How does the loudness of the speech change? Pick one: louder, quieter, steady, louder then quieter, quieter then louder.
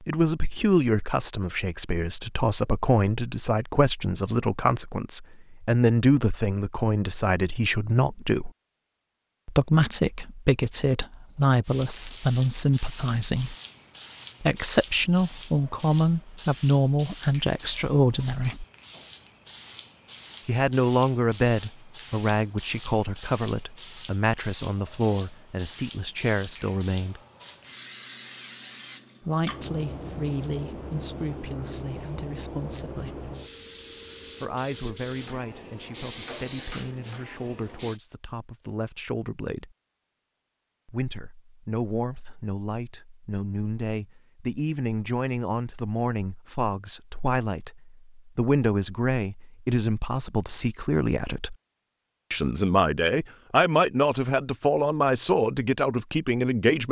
quieter then louder.